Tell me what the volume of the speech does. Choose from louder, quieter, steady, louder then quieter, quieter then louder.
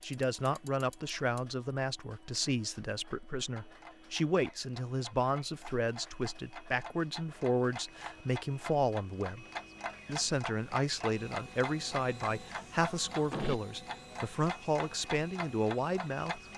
steady.